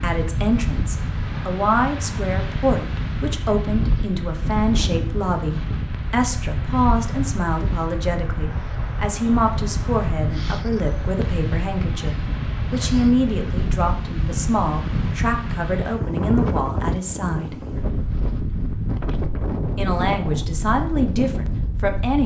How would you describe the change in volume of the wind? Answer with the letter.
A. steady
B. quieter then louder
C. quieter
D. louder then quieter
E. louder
A.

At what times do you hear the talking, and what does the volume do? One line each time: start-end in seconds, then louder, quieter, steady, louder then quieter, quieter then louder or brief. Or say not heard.
0.0-17.6 steady
19.8-22.2 brief.